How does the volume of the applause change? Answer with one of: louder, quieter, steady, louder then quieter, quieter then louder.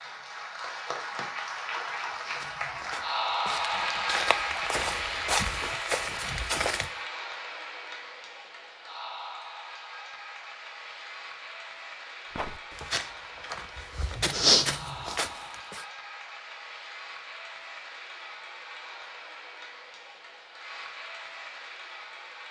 quieter.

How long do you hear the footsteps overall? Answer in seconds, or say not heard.
8 s.